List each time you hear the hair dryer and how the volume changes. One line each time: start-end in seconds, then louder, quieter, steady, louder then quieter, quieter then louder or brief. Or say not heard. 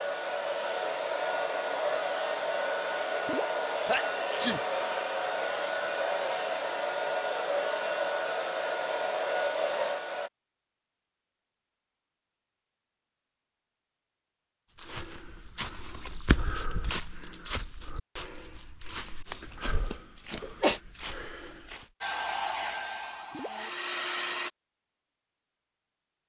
0.0-10.3 steady
22.0-24.5 brief.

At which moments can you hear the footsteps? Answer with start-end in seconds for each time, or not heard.
14.8-21.9.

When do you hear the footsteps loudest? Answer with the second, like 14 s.
16 s.